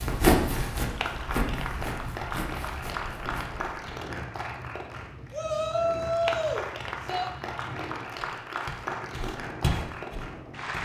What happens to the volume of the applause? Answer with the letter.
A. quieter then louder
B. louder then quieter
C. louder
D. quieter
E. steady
E.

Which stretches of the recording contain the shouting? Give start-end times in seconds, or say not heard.
5.3-7.3.